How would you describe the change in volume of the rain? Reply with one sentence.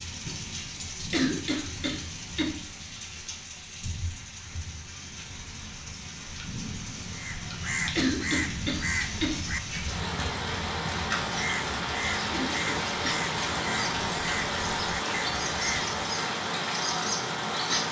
The volume of the rain goes up.